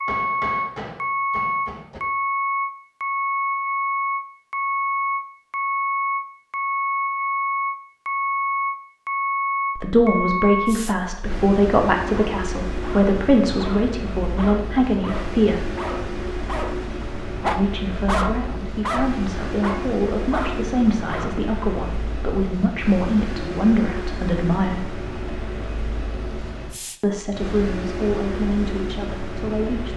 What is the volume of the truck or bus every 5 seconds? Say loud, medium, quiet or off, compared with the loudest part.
loud, loud, medium, medium, medium, medium.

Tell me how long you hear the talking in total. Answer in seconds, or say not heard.
16 s.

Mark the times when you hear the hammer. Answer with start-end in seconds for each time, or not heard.
0.1-2.0.